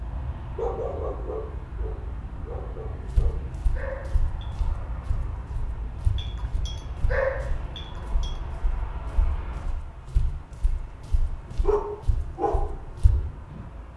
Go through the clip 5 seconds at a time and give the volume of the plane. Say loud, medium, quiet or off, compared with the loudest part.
loud, loud, medium.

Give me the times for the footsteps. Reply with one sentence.
You can hear the footsteps from 3.0 to 13.1 s.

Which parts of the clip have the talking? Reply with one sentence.
You can't hear the talking here.